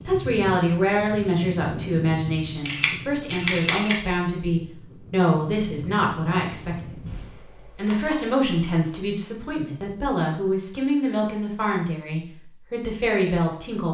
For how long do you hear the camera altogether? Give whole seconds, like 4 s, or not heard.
3 s.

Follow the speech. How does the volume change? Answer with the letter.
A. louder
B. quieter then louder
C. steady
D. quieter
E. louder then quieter
C.